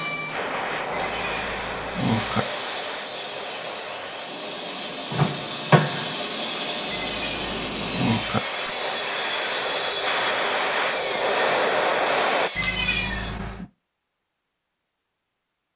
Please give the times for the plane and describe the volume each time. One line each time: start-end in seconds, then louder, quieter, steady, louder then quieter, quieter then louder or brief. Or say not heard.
0.0-12.5 quieter then louder.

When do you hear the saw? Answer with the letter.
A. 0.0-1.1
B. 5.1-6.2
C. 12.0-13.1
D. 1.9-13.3
D.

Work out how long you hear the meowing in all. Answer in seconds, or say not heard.
4 s.